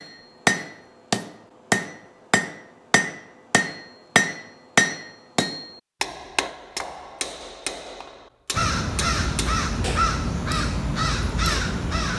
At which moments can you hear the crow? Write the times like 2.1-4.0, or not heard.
8.5-12.1.